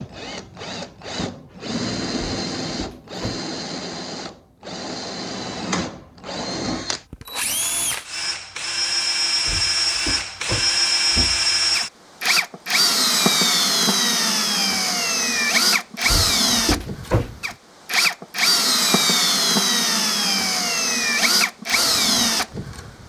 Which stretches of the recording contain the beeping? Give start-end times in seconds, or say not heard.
not heard.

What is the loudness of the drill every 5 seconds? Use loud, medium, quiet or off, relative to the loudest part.
medium, medium, loud, loud, loud.